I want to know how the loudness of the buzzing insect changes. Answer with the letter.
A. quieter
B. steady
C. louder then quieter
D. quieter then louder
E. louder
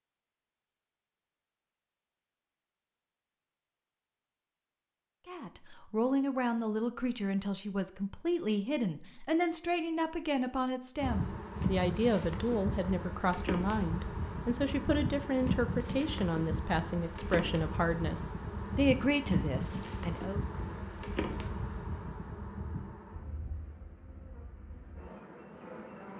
A.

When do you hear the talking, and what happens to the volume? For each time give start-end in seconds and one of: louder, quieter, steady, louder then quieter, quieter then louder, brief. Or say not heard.
5.2-20.4 steady.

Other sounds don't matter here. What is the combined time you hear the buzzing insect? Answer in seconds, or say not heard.
15 s.